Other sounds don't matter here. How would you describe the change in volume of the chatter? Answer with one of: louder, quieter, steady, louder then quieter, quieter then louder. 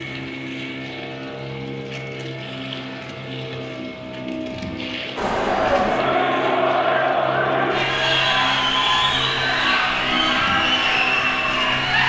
steady.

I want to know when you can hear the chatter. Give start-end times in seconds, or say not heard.
5.2-12.0.